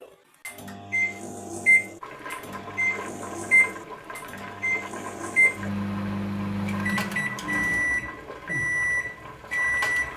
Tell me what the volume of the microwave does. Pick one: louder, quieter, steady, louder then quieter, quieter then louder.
steady.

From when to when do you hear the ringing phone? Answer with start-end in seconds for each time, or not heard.
not heard.